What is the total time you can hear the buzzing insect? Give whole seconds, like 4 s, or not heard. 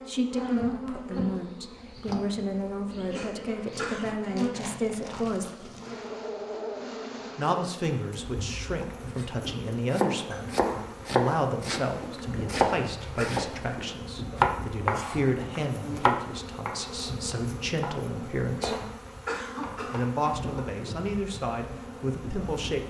23 s.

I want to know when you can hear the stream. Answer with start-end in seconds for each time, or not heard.
not heard.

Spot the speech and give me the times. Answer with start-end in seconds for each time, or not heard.
0.1-5.7, 7.3-18.8, 19.9-22.8.